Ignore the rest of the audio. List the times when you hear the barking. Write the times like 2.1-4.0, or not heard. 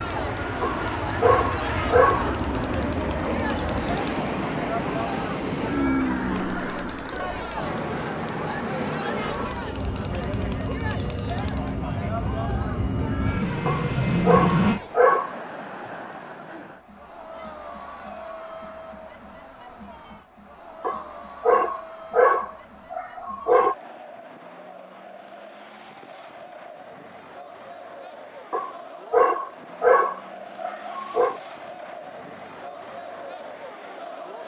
0.6-2.3, 13.7-15.3, 20.8-23.8, 28.5-31.4.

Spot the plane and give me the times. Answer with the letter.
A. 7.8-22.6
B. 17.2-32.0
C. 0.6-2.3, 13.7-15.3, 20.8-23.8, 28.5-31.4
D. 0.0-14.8
D.